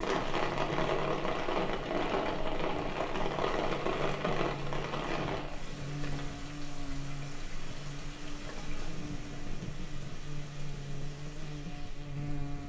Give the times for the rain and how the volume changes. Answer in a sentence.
You can hear the rain from 0.0 to 12.6 s, getting quieter.